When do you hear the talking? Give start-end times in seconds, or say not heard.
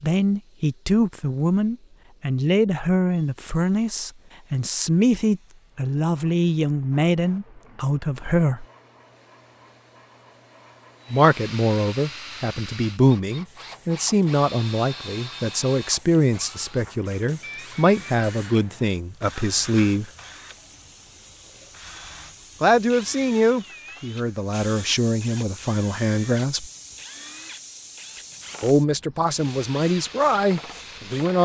0.0-8.7, 11.1-20.1, 22.6-26.6, 28.6-31.4.